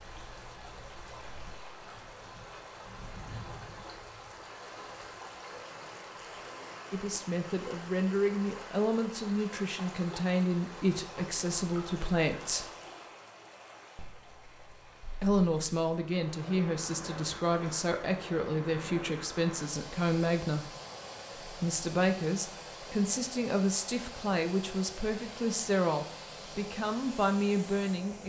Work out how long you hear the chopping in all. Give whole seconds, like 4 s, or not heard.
not heard.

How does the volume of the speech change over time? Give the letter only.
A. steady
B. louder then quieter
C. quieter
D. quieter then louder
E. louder
A.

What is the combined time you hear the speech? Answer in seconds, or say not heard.
18 s.